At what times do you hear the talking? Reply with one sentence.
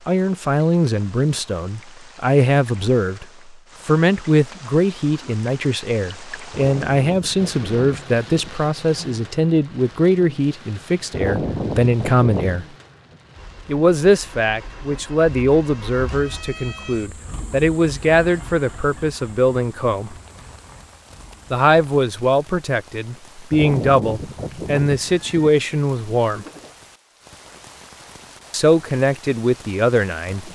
You can hear the talking from 0.1 to 3.2 s, from 3.9 to 12.7 s, from 13.7 to 20.1 s, from 21.5 to 26.4 s and from 28.5 to 30.5 s.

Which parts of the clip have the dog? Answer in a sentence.
The dog can't be heard in this clip.